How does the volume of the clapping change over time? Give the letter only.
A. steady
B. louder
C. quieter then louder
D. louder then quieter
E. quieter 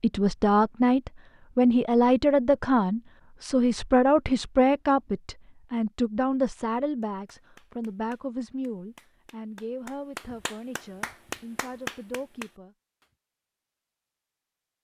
B.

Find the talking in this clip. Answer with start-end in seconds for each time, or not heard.
0.0-12.8.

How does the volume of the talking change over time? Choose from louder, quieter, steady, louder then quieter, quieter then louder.
quieter.